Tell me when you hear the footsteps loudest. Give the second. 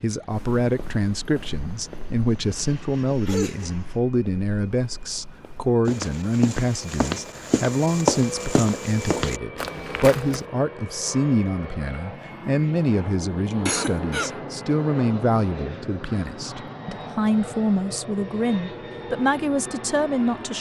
8 s.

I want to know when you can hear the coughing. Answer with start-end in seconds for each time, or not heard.
3.2-3.7, 13.4-14.3.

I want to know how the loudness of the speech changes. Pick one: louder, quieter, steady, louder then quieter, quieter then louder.
steady.